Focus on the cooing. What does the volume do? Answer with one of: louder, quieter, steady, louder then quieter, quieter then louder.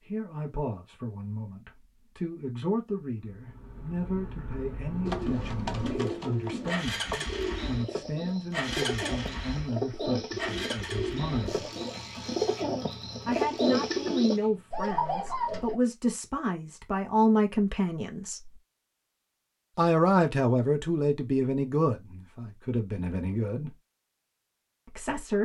louder.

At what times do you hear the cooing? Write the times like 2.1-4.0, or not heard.
5.0-15.8.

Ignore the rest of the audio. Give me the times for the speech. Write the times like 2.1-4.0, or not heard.
0.1-11.7, 13.2-18.5, 19.8-23.8, 24.9-25.4.